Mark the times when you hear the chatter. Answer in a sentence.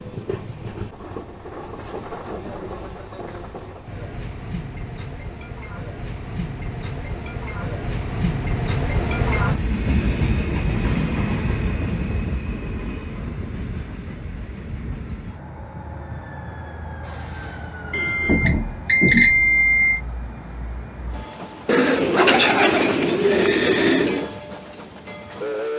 You can't hear the chatter here.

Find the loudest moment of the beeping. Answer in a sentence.
The volume of the beeping peaks at 19 seconds.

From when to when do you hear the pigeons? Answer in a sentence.
The pigeons can be heard from 21.6 to 24.2 s.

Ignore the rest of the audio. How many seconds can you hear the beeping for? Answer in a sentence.
You can hear the beeping for 2 seconds altogether.